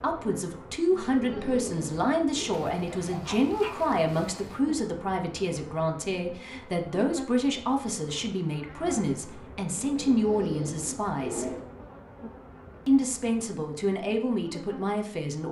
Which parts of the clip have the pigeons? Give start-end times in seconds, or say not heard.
0.9-2.5, 9.8-11.6.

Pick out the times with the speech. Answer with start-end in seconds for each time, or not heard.
0.0-11.4, 12.8-15.4.